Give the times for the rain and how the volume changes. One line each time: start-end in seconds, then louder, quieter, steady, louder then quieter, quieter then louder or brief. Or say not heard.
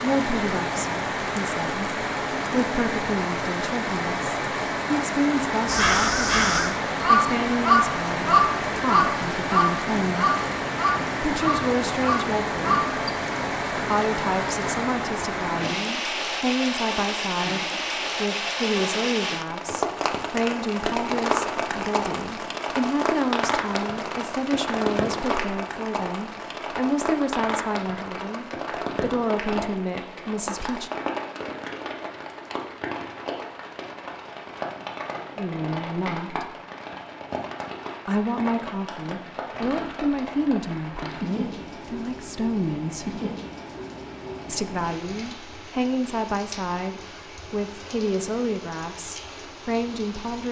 0.0-50.4 quieter.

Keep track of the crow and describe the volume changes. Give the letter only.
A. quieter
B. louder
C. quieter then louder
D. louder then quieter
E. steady
A.